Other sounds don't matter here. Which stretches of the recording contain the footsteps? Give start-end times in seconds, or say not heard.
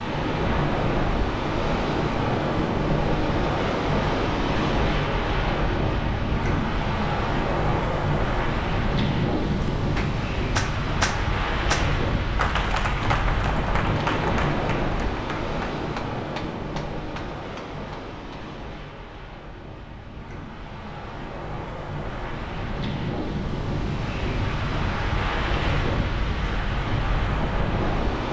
not heard.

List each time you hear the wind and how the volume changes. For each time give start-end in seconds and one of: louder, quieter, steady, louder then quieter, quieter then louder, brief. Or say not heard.
0.0-28.2 quieter then louder.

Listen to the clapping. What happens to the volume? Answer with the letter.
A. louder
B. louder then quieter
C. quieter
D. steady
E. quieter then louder
C.